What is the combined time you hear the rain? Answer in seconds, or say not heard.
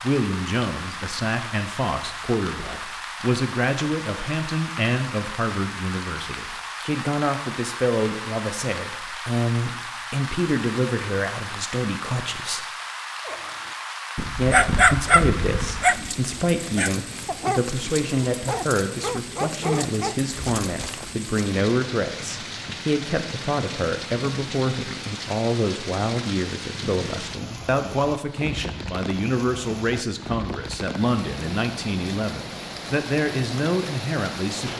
35 s.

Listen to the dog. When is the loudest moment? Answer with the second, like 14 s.
15 s.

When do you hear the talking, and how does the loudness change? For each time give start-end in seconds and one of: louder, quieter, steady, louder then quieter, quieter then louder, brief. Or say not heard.
0.0-12.7 steady
14.3-34.7 steady.